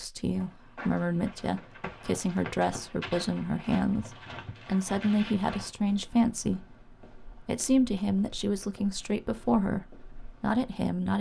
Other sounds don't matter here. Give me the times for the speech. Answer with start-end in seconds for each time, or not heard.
0.0-6.7, 7.5-11.1.